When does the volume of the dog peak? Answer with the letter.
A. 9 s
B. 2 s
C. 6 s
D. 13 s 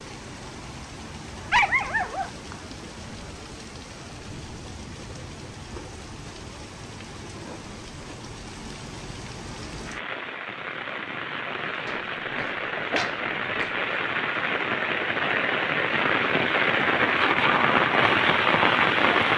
B.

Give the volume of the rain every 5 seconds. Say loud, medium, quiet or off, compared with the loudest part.
quiet, quiet, medium, loud.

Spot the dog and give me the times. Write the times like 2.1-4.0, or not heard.
1.3-2.8, 11.8-13.8.